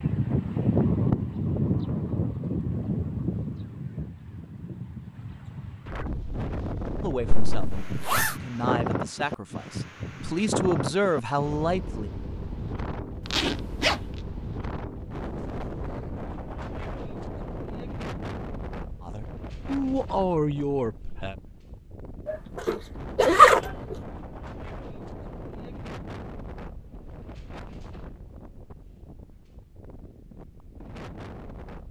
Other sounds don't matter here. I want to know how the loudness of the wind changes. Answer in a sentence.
The volume of the wind goes down.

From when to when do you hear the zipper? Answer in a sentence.
You can hear the zipper from 7.5 to 8.3 s, from 13.3 to 14.0 s and from 22.2 to 23.6 s.